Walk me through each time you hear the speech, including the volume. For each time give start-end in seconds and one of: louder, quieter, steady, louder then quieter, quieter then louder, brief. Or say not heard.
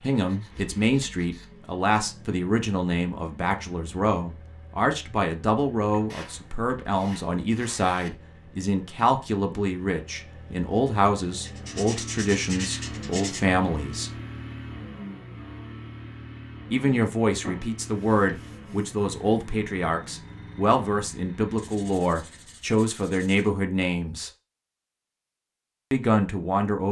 0.0-14.1 steady
16.7-24.3 steady
25.9-26.8 brief.